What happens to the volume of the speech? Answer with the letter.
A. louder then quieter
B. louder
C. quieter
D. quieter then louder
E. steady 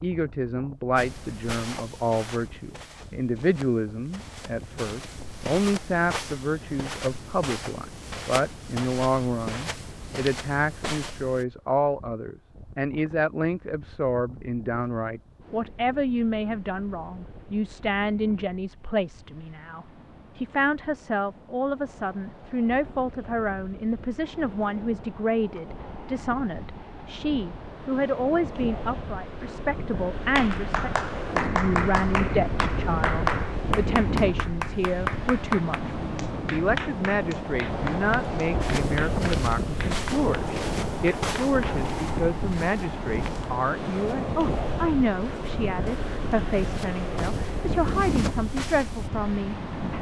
E.